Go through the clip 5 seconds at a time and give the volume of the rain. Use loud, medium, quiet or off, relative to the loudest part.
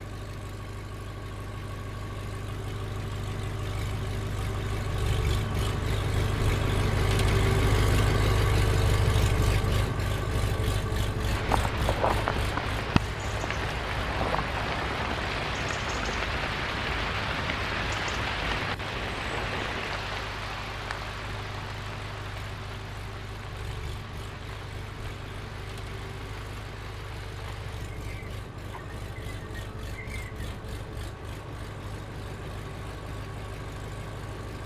off, off, loud, loud, medium, quiet, quiet.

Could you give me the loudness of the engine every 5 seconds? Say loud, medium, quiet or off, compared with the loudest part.
medium, loud, medium, quiet, quiet, quiet, quiet.